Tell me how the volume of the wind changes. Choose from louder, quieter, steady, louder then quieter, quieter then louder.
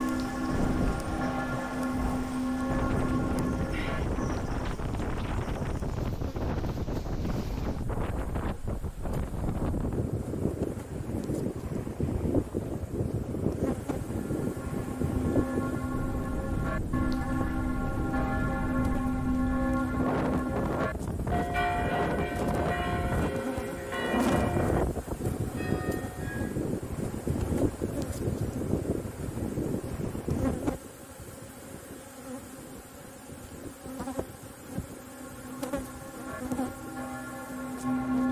quieter.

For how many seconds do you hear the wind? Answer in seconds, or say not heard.
38 s.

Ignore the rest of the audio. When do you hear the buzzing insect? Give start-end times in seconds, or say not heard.
0.0-38.2.